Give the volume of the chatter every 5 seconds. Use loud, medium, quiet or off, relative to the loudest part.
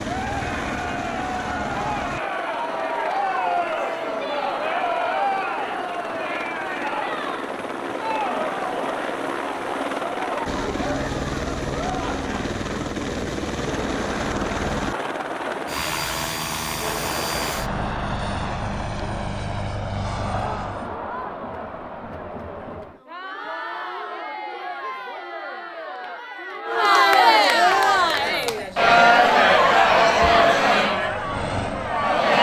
medium, medium, quiet, quiet, quiet, loud, loud.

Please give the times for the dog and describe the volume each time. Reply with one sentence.
You can't hear the dog here.